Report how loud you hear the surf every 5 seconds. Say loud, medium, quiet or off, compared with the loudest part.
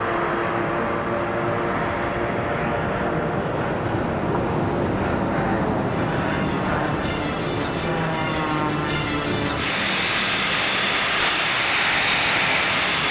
loud, loud, medium.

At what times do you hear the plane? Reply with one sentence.
The plane can be heard from 0.0 to 13.0 s.